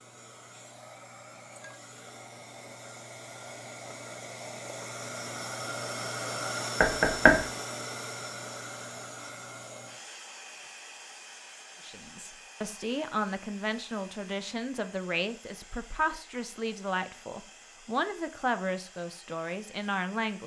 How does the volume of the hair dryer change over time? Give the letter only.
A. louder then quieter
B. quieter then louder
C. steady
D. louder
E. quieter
A.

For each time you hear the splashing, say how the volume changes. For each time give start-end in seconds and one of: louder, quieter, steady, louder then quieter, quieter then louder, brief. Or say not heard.
not heard.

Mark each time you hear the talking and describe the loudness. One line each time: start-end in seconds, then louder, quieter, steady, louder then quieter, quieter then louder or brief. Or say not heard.
11.8-20.4 steady.